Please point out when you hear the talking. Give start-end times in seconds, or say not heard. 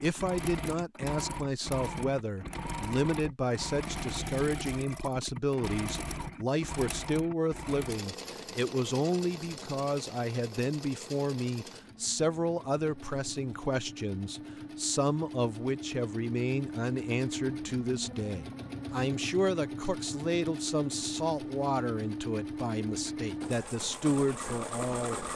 0.0-25.2.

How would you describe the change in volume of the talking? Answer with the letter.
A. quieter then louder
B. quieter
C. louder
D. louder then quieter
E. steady
E.